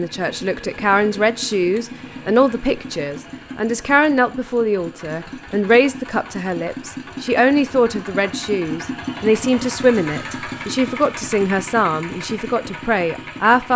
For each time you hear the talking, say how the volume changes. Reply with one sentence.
The talking can be heard from 0.0 to 13.7 s, at a steady volume.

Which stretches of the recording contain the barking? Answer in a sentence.
You can't hear the barking here.